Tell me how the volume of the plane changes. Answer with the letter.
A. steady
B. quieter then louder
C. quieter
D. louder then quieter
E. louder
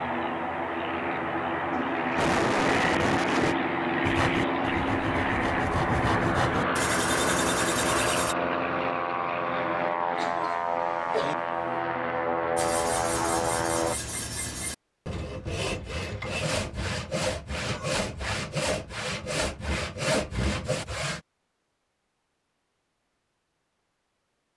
A.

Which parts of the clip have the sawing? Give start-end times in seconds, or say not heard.
4.0-8.3, 12.6-21.2.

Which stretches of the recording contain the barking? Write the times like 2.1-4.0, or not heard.
not heard.